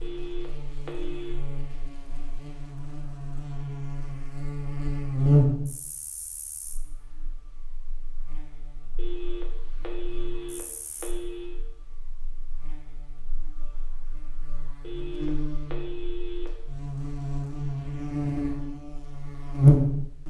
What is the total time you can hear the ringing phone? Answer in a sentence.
You can hear the ringing phone for 6 seconds altogether.